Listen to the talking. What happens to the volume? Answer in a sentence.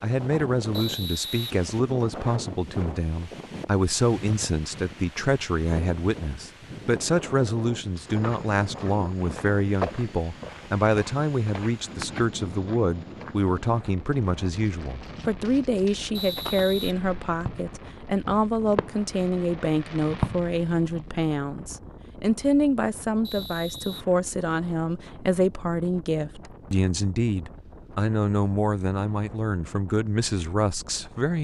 The loudness of the talking stays about the same.